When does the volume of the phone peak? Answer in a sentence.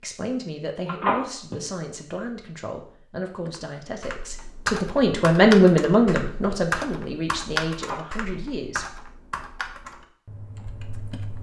The loudest moment of the phone is at 1 second.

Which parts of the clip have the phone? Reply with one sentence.
You can hear the phone from 0.8 to 1.6 s and from 7.7 to 8.4 s.